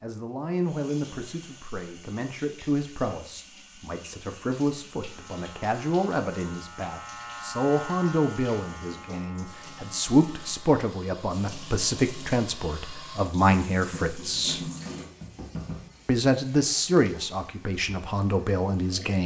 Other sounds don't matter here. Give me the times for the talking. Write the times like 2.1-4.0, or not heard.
0.0-14.6, 16.1-19.2.